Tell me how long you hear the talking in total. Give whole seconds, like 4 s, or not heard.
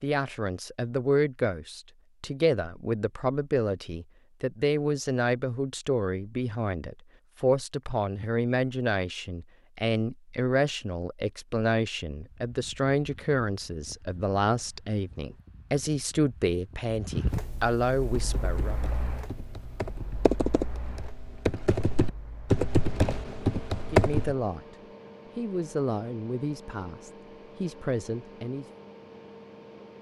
23 s.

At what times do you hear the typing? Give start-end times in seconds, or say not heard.
18.1-24.4.